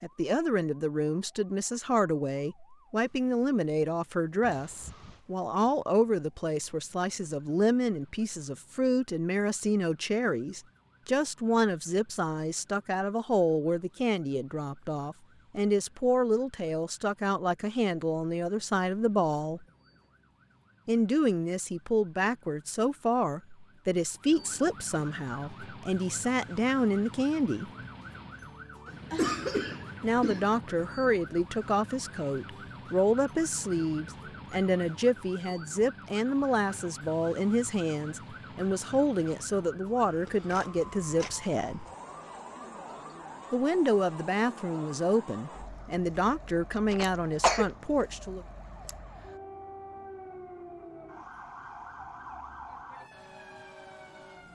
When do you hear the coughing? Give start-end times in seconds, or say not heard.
4.4-5.2, 29.1-30.5, 46.9-47.7.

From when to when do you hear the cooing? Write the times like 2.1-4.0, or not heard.
not heard.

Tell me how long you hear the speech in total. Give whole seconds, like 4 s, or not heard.
43 s.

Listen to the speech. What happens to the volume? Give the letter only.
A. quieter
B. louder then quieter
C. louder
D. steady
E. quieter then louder
D.